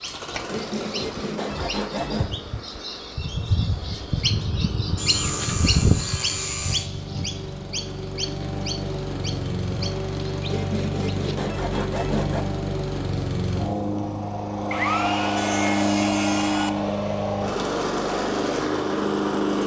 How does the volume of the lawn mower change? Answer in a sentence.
The volume of the lawn mower goes up.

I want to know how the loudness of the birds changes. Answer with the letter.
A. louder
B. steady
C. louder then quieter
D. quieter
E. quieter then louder
C.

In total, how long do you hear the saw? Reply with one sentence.
The saw can be heard for 8 seconds in total.